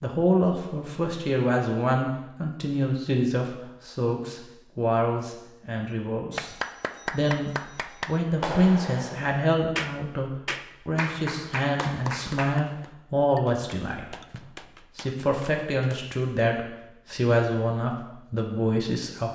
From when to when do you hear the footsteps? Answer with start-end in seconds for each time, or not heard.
not heard.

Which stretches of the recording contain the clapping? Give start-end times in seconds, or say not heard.
6.3-16.1.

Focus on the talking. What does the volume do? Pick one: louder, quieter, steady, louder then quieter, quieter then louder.
steady.